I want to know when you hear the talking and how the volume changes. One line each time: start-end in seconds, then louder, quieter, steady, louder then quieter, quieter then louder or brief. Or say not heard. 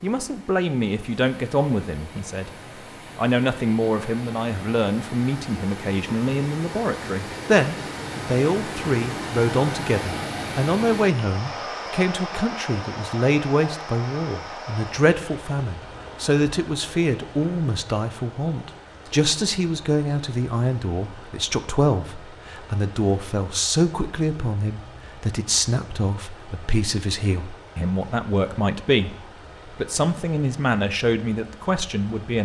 0.0-32.3 steady.